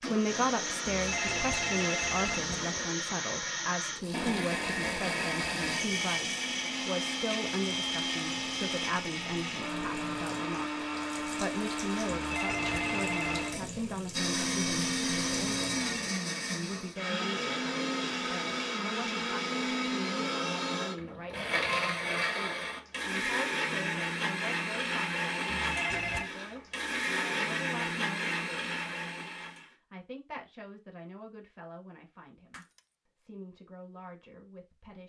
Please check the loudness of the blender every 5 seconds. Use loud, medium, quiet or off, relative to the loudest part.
loud, loud, loud, loud, loud, loud, off.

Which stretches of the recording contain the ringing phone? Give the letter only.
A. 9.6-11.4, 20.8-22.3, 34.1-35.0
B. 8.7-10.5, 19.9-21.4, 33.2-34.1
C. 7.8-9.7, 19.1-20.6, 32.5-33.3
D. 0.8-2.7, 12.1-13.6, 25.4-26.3
D.